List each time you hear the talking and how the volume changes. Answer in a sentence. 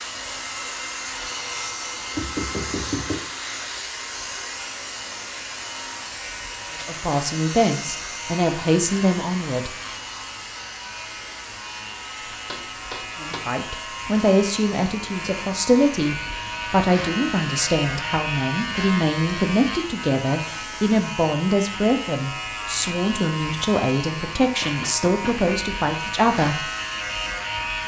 The talking can be heard briefly from 6.8 to 9.8 s; and from 13.2 to 26.7 s, at a steady volume.